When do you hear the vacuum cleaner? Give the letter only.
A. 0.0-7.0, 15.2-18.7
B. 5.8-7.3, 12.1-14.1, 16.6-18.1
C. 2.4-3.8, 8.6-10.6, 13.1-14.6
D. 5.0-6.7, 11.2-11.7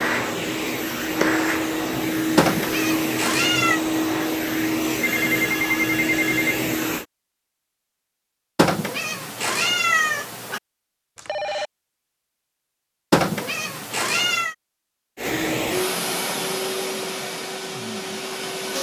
A.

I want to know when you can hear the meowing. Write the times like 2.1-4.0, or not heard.
2.4-3.8, 8.6-10.6, 13.1-14.6.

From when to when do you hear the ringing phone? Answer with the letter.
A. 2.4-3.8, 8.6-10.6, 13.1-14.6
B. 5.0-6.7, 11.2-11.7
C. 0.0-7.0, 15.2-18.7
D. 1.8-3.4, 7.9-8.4
B.